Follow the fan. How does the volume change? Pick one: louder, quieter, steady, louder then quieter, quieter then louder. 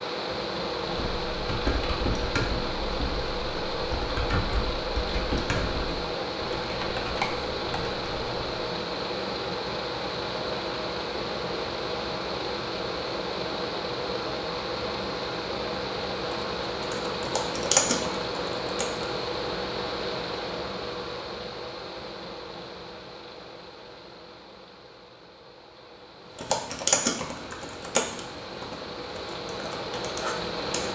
quieter.